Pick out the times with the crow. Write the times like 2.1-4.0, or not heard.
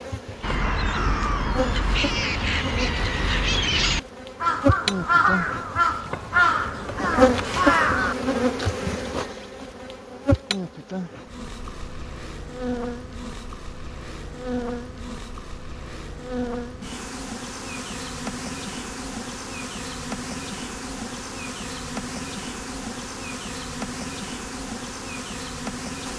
0.4-8.3.